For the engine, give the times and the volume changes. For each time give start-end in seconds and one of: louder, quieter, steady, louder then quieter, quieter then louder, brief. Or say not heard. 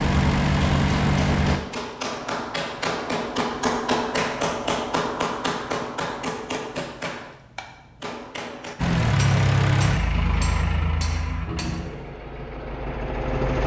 0.0-1.6 brief
8.8-13.6 quieter.